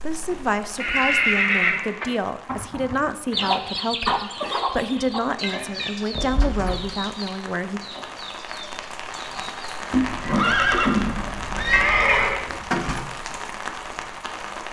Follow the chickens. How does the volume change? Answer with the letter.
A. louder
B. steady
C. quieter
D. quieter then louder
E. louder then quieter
C.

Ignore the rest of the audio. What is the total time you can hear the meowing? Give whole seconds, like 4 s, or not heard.
3 s.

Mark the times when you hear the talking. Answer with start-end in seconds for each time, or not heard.
0.0-7.8.